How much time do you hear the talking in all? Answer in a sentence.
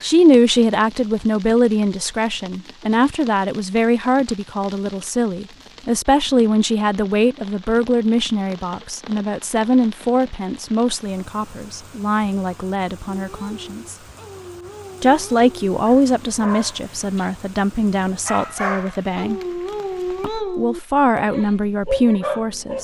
You can hear the talking for 21 seconds altogether.